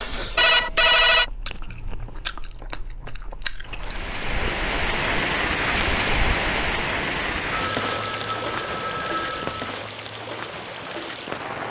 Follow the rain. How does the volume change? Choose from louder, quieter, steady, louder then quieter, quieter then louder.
quieter.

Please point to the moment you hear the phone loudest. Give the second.
1 s.